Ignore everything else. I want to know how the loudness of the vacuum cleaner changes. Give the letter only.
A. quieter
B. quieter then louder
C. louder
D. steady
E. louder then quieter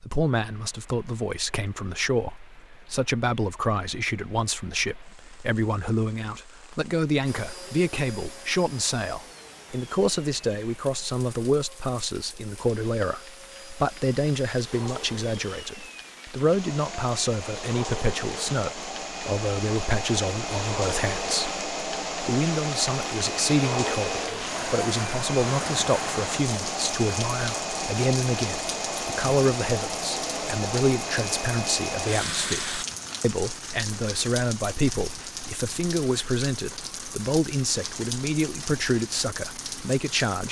C.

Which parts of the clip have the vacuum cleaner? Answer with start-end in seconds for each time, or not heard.
7.2-32.9.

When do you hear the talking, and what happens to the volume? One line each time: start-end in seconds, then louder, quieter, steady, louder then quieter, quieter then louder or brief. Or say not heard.
0.0-40.4 steady.